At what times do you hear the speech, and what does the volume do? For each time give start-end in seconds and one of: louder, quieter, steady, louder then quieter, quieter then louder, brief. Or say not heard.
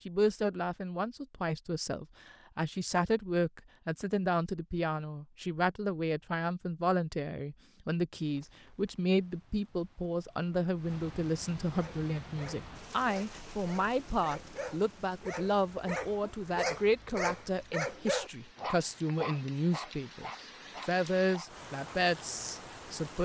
0.1-23.1 steady.